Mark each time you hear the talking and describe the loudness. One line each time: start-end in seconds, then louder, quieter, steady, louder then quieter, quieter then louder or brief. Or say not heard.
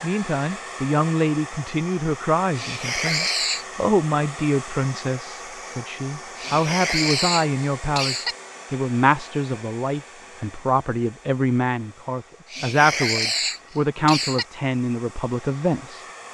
0.0-16.1 steady.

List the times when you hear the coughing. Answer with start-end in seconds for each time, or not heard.
2.5-3.6, 6.3-8.3, 12.5-14.4.